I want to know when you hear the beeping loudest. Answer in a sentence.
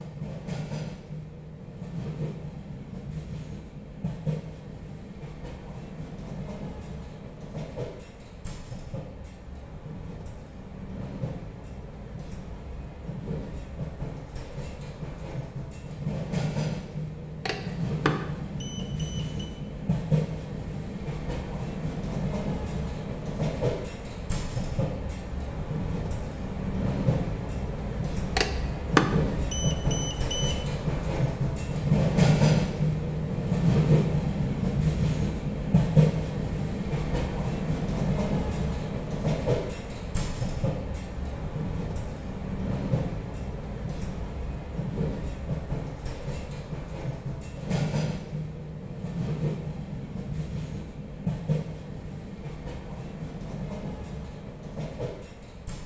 The loudest moment of the beeping is at 29 seconds.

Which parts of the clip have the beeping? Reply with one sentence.
You can hear the beeping from 17.4 to 19.5 s and from 28.4 to 30.6 s.